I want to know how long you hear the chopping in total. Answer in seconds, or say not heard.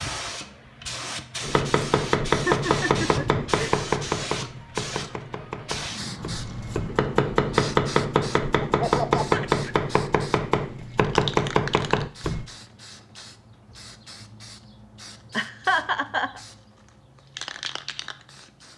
11 s.